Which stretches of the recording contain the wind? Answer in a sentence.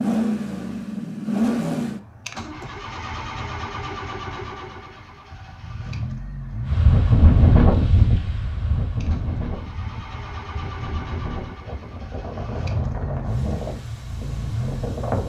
You can hear the wind from 6.7 to 15.2 s.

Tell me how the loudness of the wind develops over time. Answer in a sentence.
The loudness of the wind goes down.